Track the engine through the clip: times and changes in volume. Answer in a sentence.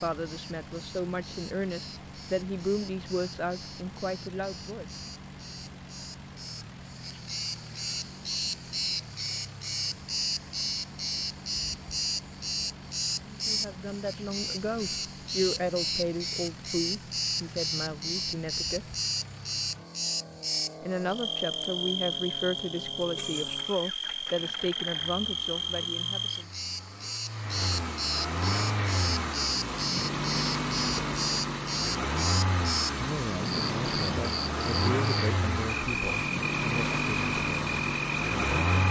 You can hear the engine from 0.0 to 38.8 s, getting louder.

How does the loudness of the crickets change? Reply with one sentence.
The volume of the crickets goes up.